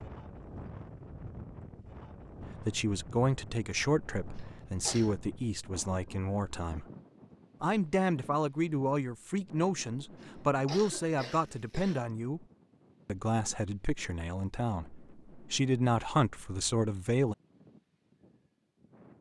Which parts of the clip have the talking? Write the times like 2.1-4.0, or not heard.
2.4-6.8, 7.6-12.4, 13.1-17.4.